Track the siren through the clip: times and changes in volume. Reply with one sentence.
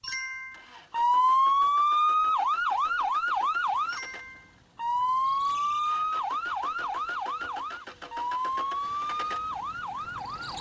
You can hear the siren from 0.0 to 10.5 s, getting quieter.